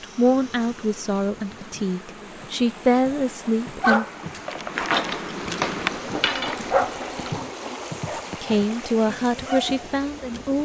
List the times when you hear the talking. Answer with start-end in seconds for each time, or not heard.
0.0-4.0, 8.4-10.6.